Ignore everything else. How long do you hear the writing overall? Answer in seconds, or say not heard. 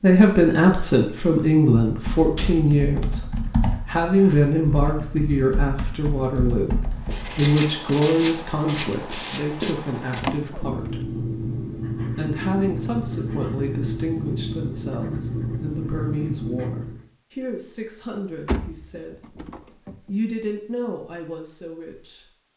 10 s.